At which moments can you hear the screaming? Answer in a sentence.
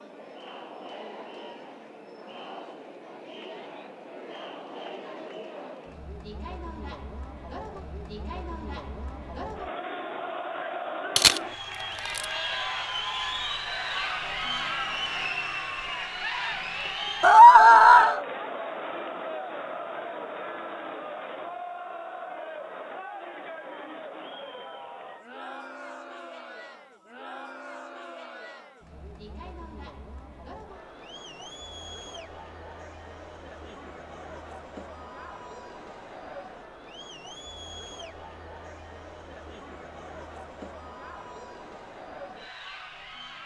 The screaming can be heard from 17.2 to 18.2 s.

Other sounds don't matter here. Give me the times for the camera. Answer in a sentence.
You can hear the camera from 11.2 to 12.2 s.